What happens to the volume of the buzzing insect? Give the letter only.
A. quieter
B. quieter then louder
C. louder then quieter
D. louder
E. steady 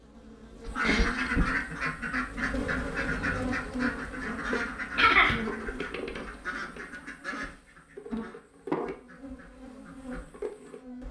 A.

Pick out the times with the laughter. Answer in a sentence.
The laughter can be heard from 5.0 to 5.5 s.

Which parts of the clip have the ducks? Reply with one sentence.
You can hear the ducks from 0.7 to 10.8 s.